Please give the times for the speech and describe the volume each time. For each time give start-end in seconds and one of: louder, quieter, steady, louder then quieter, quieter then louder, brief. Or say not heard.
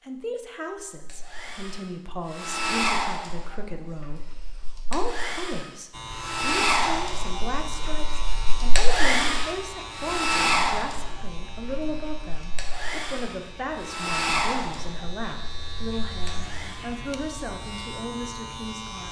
0.0-19.0 steady.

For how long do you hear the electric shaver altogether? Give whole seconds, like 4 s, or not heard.
13 s.